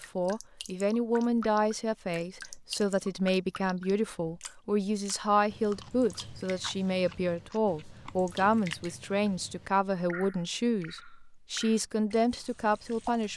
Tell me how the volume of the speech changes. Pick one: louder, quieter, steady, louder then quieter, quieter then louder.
steady.